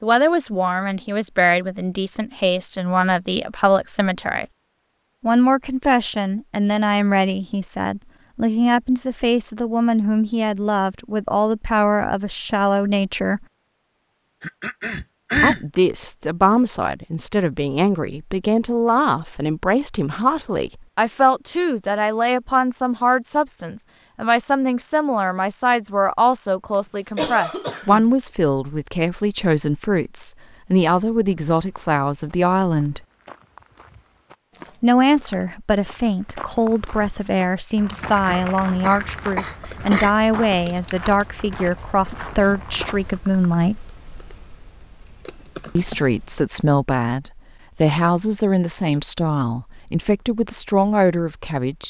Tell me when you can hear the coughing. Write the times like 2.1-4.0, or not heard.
14.4-15.6, 27.1-28.1, 38.1-40.1.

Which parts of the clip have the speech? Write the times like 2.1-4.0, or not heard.
0.0-4.5, 5.2-13.4, 15.4-33.0, 34.8-43.9, 45.8-51.8.